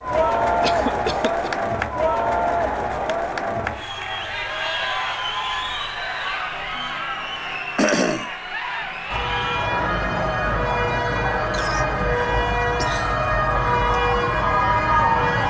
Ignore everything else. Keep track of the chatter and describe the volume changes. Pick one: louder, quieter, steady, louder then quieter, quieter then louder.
quieter.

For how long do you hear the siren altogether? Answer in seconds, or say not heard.
6 s.